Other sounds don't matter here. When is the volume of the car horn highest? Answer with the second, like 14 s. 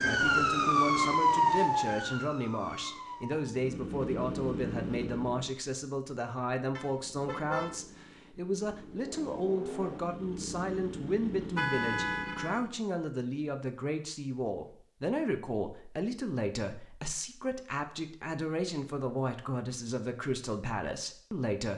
12 s.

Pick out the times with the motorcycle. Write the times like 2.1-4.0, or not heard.
3.5-5.6, 7.0-12.8.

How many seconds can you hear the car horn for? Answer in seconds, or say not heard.
2 s.